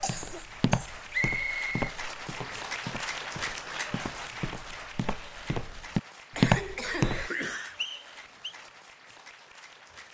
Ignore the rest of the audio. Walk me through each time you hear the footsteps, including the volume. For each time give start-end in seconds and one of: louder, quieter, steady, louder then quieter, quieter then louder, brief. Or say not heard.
0.0-7.3 quieter then louder.